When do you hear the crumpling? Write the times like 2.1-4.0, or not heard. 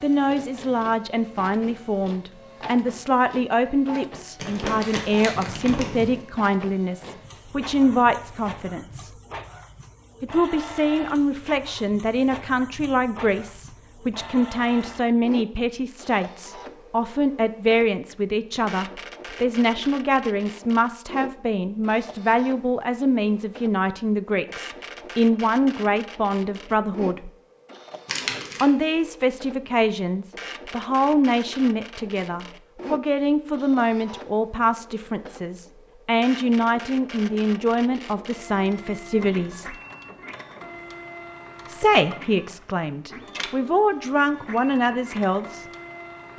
4.3-6.2, 28.1-28.7.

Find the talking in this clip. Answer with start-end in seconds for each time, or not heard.
0.0-9.1, 10.2-27.3, 28.6-39.8, 41.6-45.6.